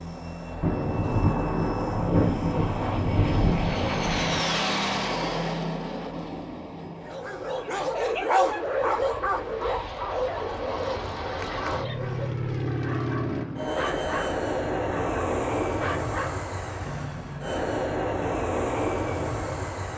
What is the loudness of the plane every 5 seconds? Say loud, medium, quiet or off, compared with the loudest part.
loud, medium, loud, loud.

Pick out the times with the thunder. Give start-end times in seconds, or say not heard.
0.6-4.5.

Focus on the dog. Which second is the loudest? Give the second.
8 s.